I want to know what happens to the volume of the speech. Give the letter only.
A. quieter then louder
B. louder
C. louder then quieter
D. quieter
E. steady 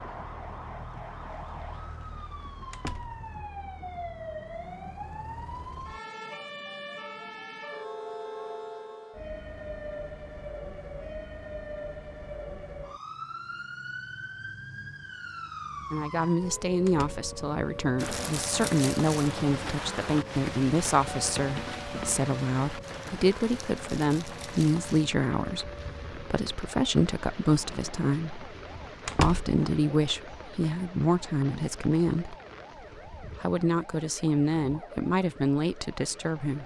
E.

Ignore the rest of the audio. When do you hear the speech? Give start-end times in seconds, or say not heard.
15.9-28.4, 29.1-32.4, 33.2-36.6.